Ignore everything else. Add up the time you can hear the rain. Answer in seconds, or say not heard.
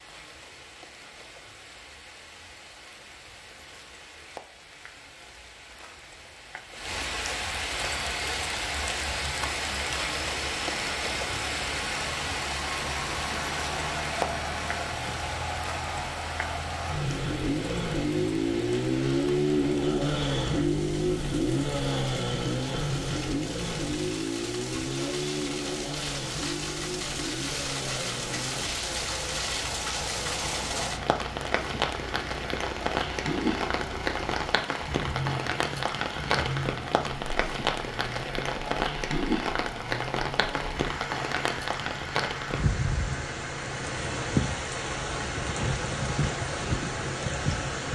48 s.